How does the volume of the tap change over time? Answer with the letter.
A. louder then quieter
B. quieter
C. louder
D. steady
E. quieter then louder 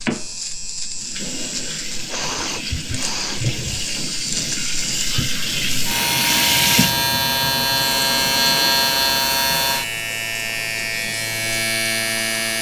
A.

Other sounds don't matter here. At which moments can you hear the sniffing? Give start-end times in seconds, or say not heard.
2.0-3.5.